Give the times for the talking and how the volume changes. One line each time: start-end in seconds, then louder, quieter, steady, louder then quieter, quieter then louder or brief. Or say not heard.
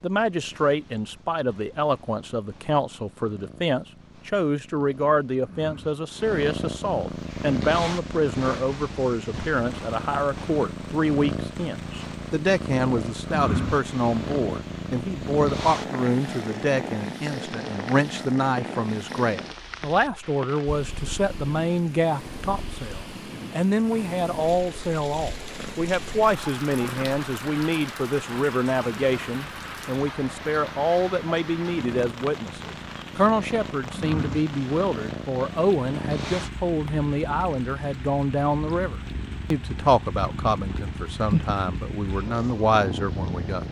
0.0-43.6 steady.